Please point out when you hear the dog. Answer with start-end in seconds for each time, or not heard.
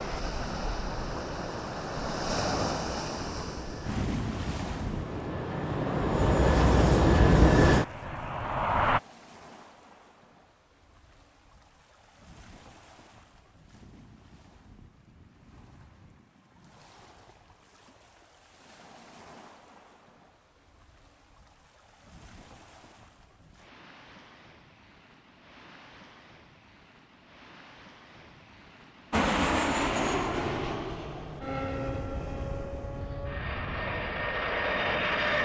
not heard.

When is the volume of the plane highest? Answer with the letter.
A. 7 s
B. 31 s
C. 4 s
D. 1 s
A.